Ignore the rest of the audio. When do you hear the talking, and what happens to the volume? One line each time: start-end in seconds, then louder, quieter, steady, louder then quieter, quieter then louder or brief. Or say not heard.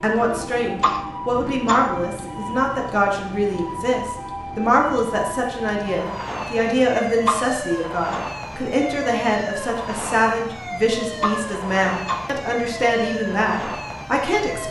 0.0-14.6 steady.